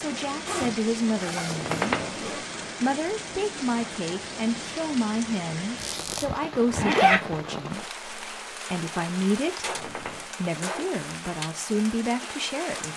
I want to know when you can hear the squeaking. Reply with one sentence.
The squeaking can be heard from 1.4 to 2.2 s, from 5.8 to 6.2 s and from 9.6 to 10.3 s.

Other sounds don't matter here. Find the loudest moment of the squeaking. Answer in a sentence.
The volume of the squeaking peaks at 2 seconds.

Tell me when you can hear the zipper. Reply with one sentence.
The zipper can be heard from 0.5 to 2.4 s and from 6.7 to 7.2 s.